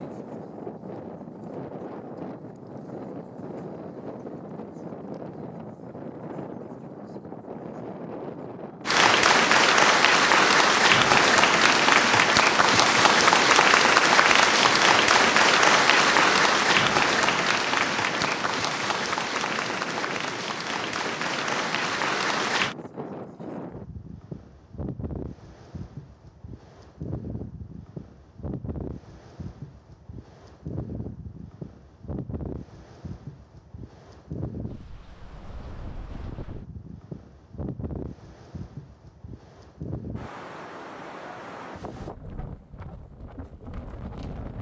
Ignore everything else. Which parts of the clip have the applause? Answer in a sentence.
You can hear the applause from 8.8 to 22.8 s.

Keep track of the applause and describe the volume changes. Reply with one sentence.
The loudness of the applause goes down.